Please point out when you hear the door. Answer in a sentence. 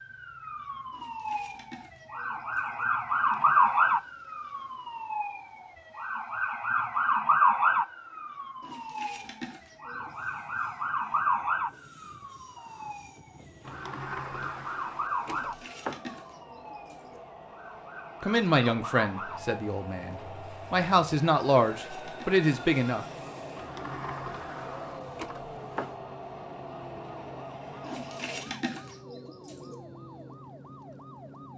The door can be heard from 3.1 to 3.8 s, from 13.7 to 16.0 s and from 23.6 to 25.9 s.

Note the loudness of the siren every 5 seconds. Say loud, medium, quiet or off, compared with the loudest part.
loud, loud, medium, medium, quiet, quiet, quiet.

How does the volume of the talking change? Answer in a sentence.
The volume of the talking goes down, then up.